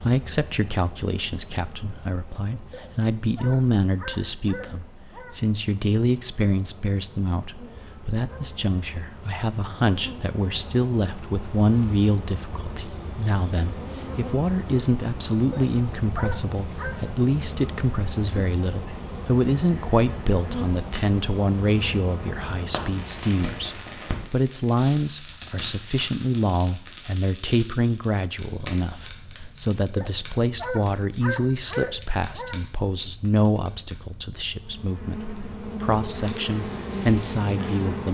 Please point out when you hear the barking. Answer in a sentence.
You can hear the barking from 2.7 to 5.4 s, from 15.5 to 17.0 s and from 29.9 to 32.6 s.